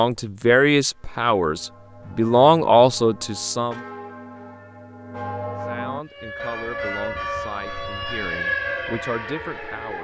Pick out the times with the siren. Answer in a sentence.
The siren can be heard from 6.0 to 9.9 s.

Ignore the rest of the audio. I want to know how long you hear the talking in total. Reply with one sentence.
The talking can be heard for 8 seconds in total.